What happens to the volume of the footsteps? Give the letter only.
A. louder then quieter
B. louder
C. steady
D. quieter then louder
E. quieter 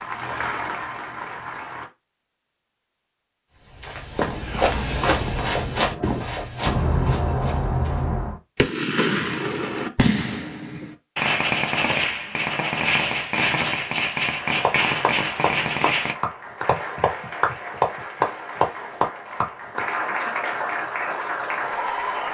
E.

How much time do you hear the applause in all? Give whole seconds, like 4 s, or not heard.
10 s.